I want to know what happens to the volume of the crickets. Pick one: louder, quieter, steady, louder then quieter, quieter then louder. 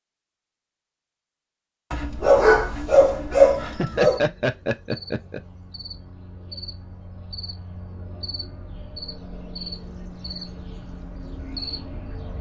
louder.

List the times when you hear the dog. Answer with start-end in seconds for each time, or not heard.
1.9-4.2.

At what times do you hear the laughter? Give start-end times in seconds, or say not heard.
3.4-5.4.